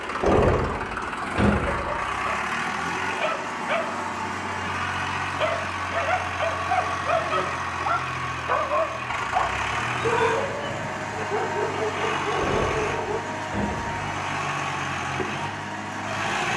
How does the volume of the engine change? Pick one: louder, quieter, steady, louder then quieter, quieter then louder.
steady.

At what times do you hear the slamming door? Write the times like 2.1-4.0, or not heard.
0.2-2.0, 12.3-14.0.